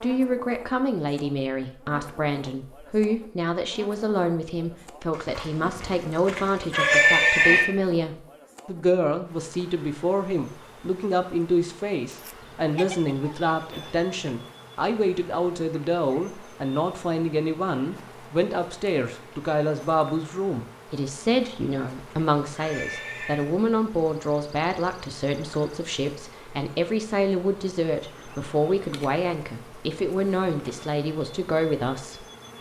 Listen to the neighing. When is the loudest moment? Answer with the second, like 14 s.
7 s.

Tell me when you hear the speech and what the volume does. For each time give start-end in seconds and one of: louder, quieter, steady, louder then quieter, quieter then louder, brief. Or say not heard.
0.0-32.2 steady.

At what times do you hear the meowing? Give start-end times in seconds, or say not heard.
not heard.